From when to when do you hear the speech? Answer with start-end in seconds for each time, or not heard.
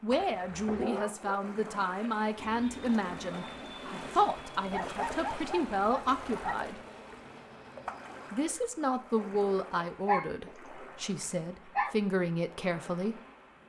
0.0-6.8, 8.3-13.2.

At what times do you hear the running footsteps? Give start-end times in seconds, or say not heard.
not heard.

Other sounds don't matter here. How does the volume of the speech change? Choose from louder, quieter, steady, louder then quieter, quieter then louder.
steady.